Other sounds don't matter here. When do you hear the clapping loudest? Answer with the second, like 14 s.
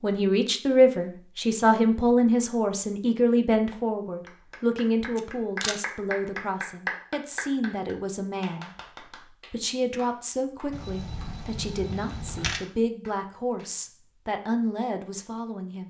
7 s.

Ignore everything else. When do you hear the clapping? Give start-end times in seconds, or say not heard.
3.7-13.8.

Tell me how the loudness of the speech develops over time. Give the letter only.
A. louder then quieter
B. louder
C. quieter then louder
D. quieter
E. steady
D.